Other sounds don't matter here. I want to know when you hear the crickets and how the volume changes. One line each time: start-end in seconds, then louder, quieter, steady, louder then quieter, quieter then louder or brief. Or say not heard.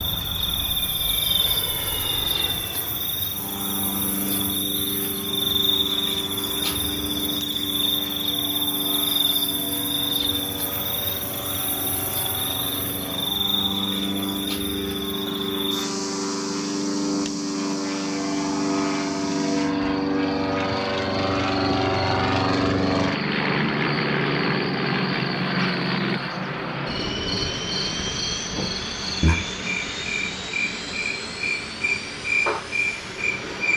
0.0-33.7 quieter then louder.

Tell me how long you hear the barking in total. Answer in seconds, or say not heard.
not heard.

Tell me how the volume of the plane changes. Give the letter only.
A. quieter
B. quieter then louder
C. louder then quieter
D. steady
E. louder
C.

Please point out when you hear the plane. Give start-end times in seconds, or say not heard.
0.0-33.7.